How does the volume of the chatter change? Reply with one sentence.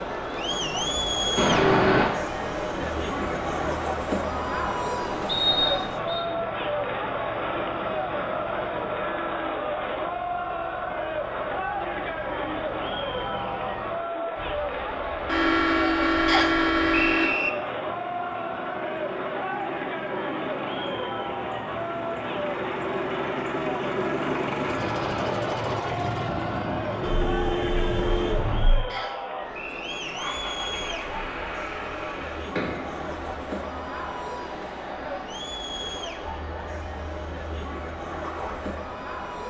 The volume of the chatter goes down.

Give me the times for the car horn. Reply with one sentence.
The car horn can be heard from 1.4 to 2.1 s, from 15.2 to 17.3 s and from 27.0 to 28.8 s.